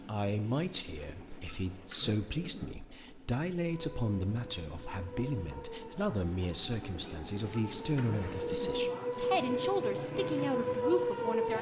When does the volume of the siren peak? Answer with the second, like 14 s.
11 s.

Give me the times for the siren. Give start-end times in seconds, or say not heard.
3.5-11.5.